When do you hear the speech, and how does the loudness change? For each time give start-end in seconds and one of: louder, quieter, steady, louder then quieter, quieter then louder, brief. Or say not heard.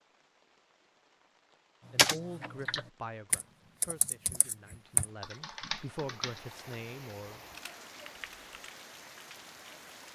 1.9-7.4 quieter then louder.